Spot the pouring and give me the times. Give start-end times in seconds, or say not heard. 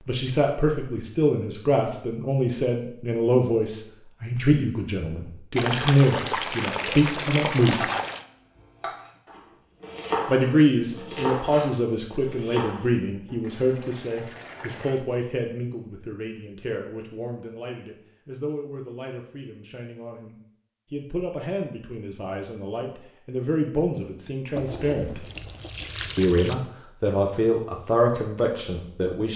5.5-8.2, 13.4-15.1, 24.6-26.6.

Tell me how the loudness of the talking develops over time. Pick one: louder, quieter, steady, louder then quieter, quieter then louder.
quieter then louder.